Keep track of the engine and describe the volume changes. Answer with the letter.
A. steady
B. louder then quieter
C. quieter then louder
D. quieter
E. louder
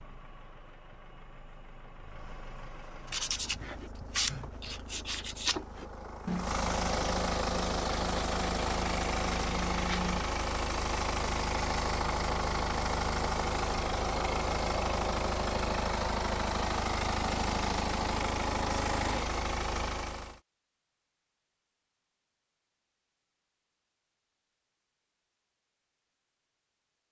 E.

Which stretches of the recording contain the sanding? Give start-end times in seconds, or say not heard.
3.0-10.2.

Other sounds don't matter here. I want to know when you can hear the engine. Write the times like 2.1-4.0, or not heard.
0.0-20.4.